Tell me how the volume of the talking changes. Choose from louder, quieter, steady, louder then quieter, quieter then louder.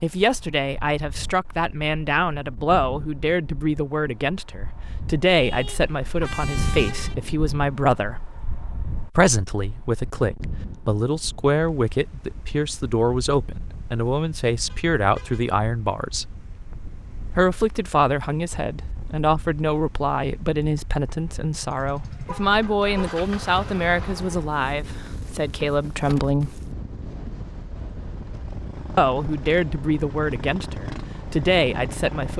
steady.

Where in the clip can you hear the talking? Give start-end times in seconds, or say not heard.
0.0-8.2, 9.2-16.2, 17.4-26.5, 28.9-32.3.